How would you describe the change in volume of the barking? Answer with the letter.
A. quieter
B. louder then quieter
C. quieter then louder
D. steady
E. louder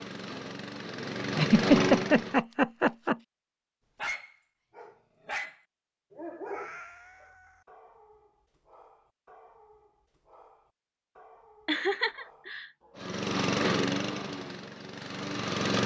A.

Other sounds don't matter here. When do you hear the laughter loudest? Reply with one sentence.
The volume of the laughter peaks at 2 seconds.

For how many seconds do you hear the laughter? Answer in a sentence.
You can hear the laughter for 3 seconds altogether.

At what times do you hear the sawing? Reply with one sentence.
You can't hear the sawing here.